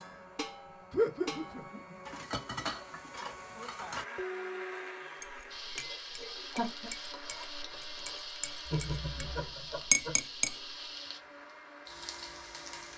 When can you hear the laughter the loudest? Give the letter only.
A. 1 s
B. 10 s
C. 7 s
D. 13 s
A.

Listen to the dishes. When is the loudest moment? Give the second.
10 s.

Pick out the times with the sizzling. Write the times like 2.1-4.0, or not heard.
5.5-12.9.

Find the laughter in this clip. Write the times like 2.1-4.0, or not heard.
0.9-1.8, 6.2-6.9, 8.7-10.2.